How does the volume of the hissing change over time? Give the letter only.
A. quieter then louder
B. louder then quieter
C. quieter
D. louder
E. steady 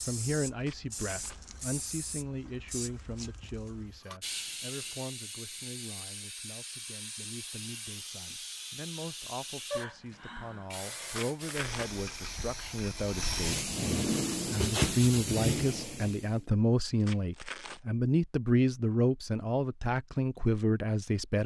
D.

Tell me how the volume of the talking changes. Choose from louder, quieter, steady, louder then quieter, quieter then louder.
quieter then louder.